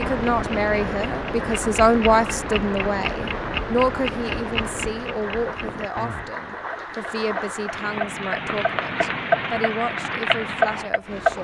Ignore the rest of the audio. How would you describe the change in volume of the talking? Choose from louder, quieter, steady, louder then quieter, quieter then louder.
quieter.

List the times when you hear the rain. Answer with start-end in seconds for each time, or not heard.
0.0-11.3.